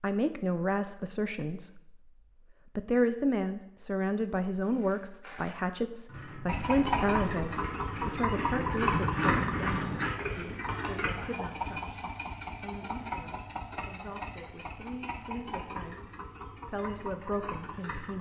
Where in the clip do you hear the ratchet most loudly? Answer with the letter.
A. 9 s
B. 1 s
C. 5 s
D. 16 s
A.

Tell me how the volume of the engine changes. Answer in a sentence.
The volume of the engine goes down.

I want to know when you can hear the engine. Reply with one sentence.
You can hear the engine from 6.5 to 18.1 s.